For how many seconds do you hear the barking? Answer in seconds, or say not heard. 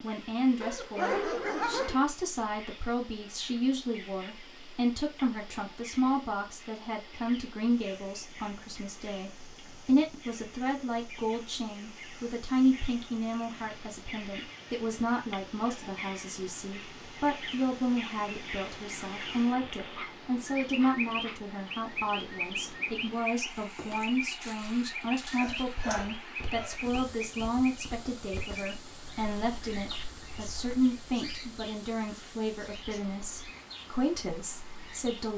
4 s.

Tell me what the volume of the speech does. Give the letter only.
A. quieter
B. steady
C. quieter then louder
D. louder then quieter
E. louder
B.